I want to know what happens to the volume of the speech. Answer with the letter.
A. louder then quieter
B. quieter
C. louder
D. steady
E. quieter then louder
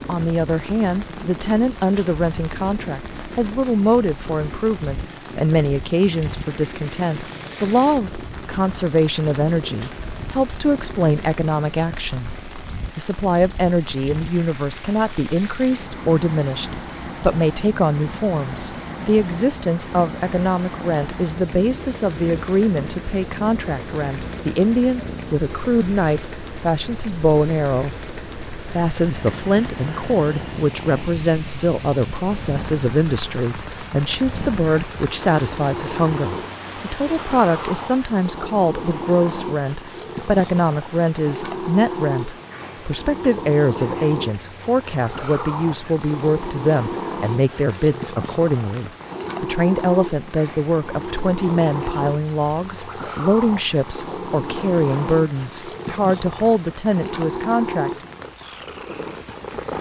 D.